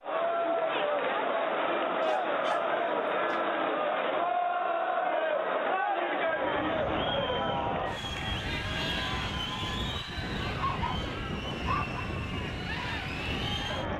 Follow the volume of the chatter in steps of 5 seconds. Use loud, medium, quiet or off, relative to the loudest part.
loud, loud, medium.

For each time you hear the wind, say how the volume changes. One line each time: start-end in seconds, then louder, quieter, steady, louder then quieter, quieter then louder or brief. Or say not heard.
6.2-13.9 steady.